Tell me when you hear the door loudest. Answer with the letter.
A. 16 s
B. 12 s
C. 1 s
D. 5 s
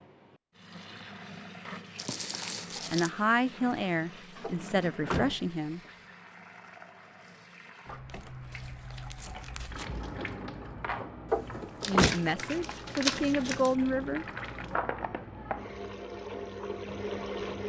B.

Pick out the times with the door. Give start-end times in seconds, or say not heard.
4.4-5.5, 11.3-12.2.